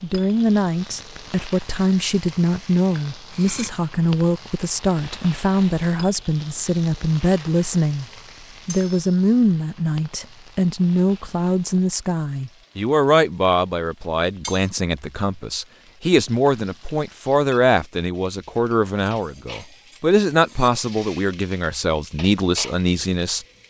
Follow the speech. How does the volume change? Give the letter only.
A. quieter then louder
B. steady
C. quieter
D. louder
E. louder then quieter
B.